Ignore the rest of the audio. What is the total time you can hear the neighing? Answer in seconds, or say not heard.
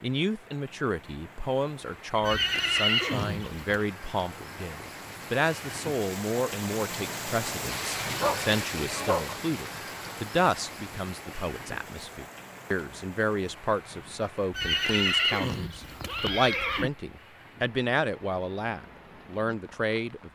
4 s.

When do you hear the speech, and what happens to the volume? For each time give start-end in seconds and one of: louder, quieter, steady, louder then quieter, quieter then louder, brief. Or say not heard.
0.0-20.3 steady.